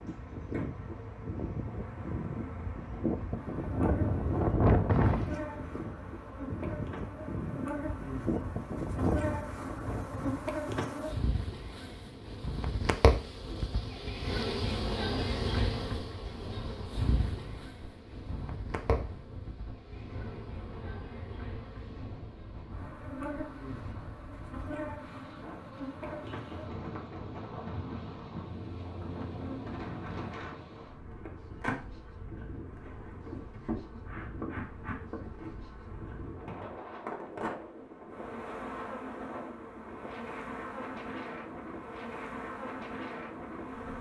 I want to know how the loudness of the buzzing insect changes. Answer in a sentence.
The volume of the buzzing insect goes up, then down.